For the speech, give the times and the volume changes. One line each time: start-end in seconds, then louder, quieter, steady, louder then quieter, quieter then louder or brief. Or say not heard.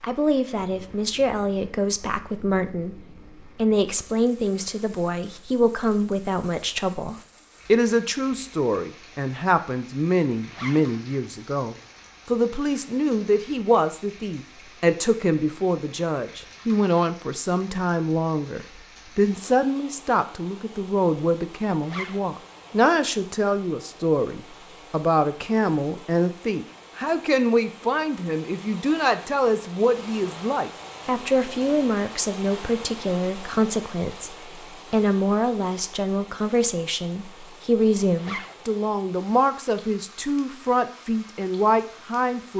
0.0-42.5 steady.